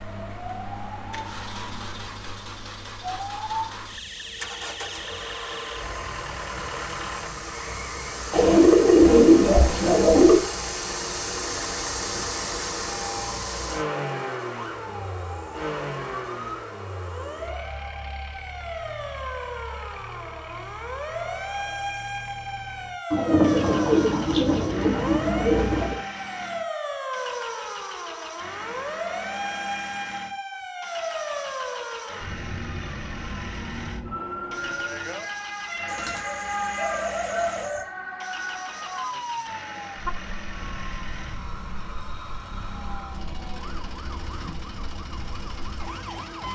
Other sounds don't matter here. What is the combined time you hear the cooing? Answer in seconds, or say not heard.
7 s.